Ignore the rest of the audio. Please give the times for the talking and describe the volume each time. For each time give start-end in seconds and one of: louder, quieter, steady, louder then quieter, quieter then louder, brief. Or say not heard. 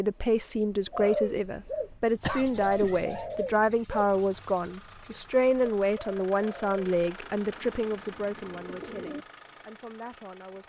0.0-10.6 quieter.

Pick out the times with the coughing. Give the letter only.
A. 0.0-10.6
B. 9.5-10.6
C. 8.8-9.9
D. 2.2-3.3
D.